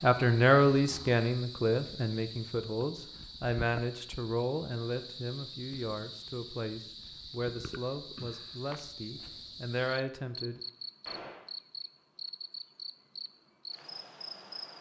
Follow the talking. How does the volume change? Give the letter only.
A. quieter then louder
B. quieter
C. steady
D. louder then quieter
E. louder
B.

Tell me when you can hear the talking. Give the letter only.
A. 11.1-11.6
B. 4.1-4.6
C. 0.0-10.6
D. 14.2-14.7
C.